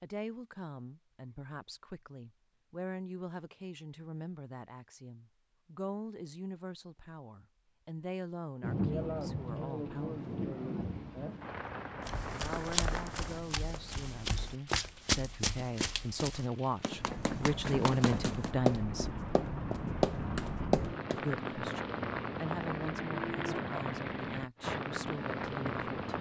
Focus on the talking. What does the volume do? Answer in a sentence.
The volume of the talking goes up, then down.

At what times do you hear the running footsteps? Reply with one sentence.
The running footsteps can be heard from 12.1 to 21.2 s.